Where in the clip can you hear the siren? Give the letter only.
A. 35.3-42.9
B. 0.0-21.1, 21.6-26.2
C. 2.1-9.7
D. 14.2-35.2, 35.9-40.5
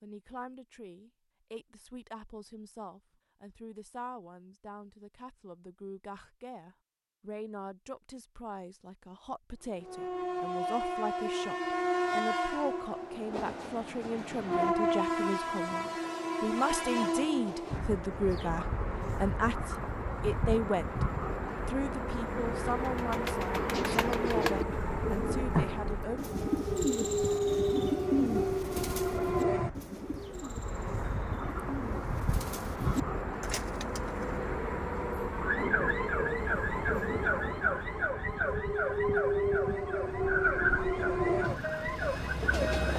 A.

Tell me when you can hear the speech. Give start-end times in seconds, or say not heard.
0.0-21.1, 21.6-26.2.